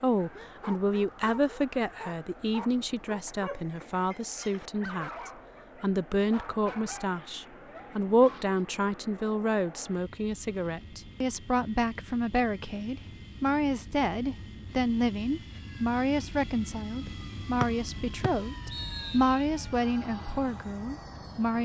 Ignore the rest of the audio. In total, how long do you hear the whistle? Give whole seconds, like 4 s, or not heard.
2 s.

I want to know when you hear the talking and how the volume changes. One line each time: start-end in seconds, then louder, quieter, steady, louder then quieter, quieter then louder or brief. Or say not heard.
0.0-21.5 steady.